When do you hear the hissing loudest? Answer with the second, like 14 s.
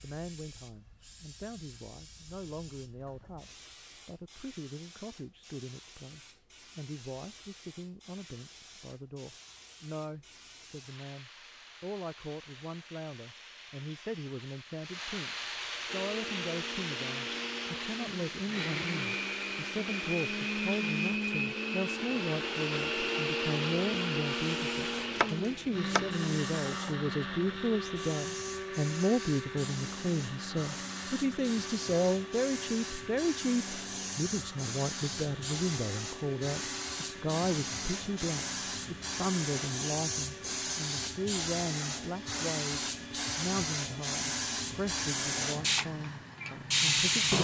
47 s.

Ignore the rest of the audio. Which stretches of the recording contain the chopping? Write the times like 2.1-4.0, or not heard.
25.1-26.1.